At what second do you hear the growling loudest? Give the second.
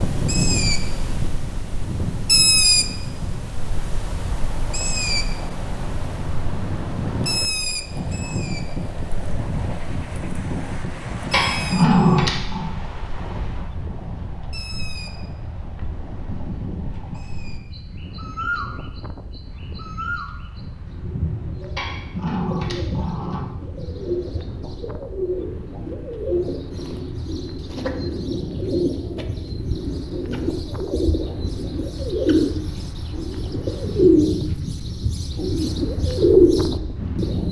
12 s.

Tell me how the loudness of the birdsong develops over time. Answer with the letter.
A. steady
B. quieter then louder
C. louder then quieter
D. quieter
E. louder
B.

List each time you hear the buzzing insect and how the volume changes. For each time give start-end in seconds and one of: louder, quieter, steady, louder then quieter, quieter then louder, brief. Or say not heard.
not heard.